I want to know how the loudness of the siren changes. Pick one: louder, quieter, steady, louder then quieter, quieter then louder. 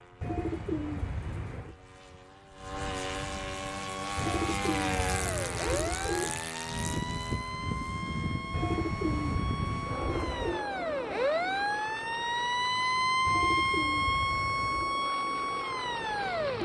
louder.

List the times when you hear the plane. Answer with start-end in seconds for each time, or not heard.
0.0-16.6.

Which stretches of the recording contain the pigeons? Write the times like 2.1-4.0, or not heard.
0.2-1.8, 4.2-6.3, 8.5-10.7, 13.2-14.9.